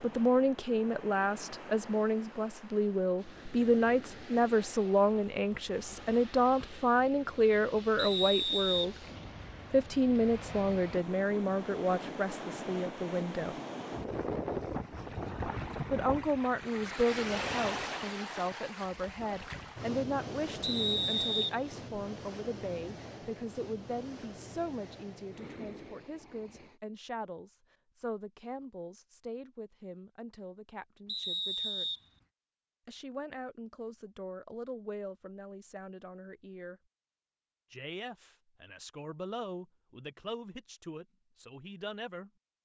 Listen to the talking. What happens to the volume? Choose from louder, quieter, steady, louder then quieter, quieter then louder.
quieter.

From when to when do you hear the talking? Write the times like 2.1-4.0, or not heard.
0.0-8.9, 9.7-13.6, 15.9-31.9, 32.9-36.8, 37.7-42.3.